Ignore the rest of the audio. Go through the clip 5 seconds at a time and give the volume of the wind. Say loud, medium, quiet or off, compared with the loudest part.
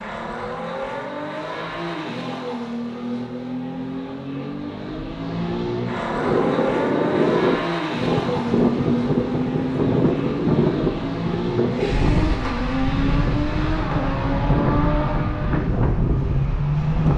off, loud, loud, loud.